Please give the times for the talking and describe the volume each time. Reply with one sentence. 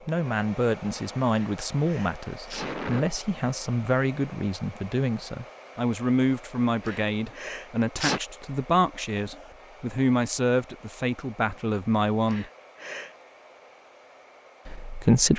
You can hear the talking from 0.1 to 12.4 s, at a steady volume; and briefly from 14.7 to 15.3 s.